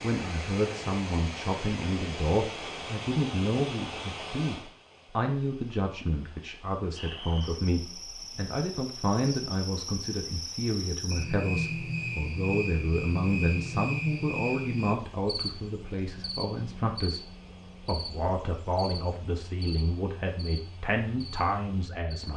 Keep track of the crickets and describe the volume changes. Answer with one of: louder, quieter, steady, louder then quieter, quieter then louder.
louder then quieter.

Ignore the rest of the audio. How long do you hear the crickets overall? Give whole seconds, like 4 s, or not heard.
15 s.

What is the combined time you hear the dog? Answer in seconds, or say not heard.
not heard.